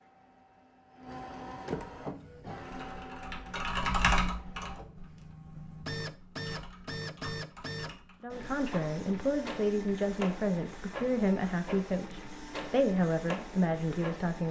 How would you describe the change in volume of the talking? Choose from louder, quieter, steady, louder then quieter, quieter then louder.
steady.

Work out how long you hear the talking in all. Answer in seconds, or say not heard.
6 s.